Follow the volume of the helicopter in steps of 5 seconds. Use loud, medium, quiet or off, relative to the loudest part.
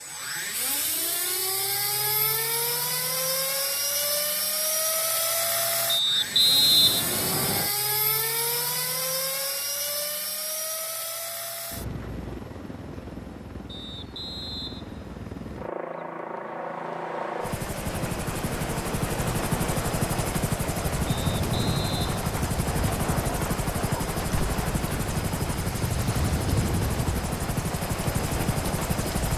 loud, loud, medium, loud, loud, loud.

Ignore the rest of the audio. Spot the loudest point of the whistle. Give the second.
7 s.